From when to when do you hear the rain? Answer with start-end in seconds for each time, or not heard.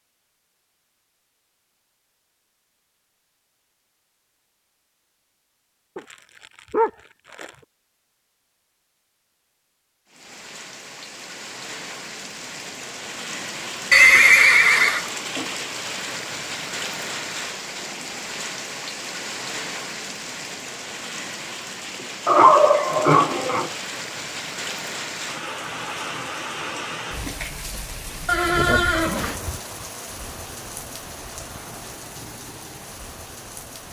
10.1-33.8.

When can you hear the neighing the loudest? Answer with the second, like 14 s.
14 s.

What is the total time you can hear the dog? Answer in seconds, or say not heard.
3 s.